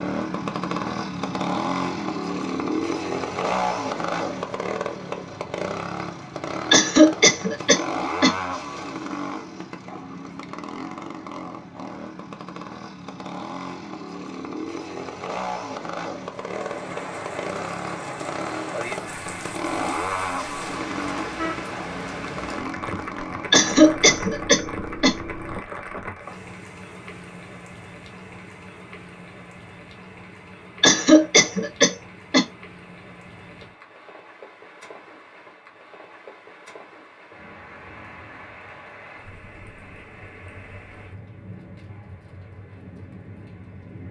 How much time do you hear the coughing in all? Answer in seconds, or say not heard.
5 s.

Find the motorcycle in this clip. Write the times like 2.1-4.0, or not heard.
0.0-25.6.